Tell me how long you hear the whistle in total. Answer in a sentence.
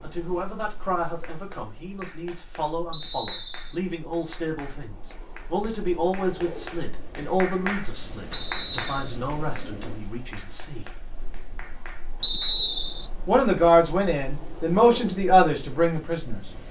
The whistle can be heard for 3 seconds in total.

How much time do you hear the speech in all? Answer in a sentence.
The speech can be heard for 14 seconds in total.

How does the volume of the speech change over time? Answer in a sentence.
The loudness of the speech goes up.